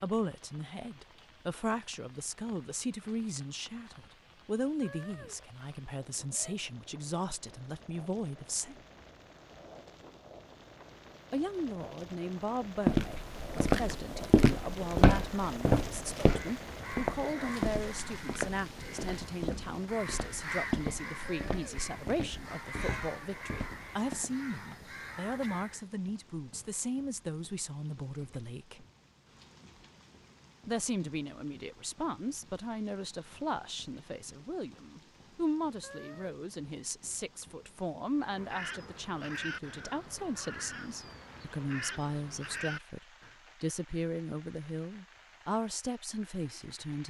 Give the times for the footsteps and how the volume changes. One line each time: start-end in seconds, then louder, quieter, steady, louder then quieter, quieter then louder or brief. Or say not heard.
12.8-24.3 quieter.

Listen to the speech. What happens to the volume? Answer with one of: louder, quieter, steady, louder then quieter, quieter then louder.
steady.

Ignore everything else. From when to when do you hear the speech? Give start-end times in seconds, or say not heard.
0.0-8.8, 11.3-28.9, 30.6-47.0.